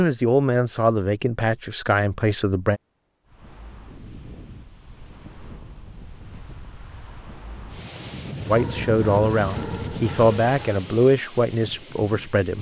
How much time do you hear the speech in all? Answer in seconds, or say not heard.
7 s.